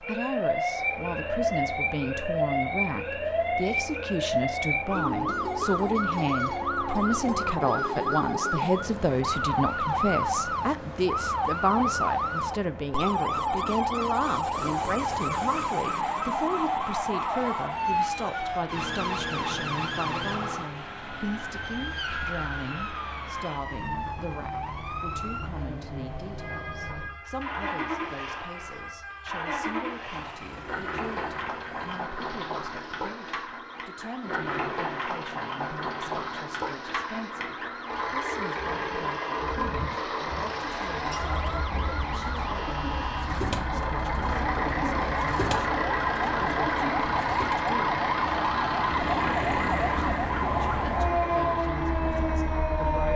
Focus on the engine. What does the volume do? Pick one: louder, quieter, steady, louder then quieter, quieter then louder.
louder.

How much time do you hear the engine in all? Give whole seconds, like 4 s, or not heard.
53 s.